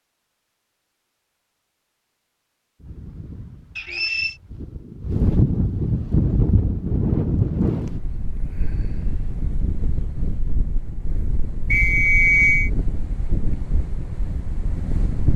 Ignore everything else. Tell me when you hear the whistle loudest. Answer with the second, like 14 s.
12 s.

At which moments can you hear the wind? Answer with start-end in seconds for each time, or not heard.
2.8-15.3.